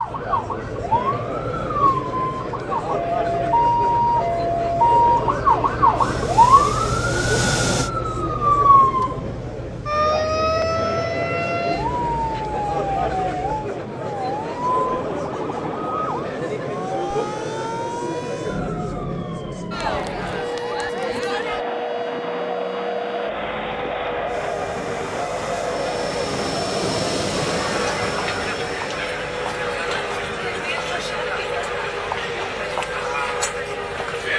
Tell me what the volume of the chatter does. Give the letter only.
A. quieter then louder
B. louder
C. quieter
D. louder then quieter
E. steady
E.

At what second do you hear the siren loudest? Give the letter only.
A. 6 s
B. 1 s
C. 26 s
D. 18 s
A.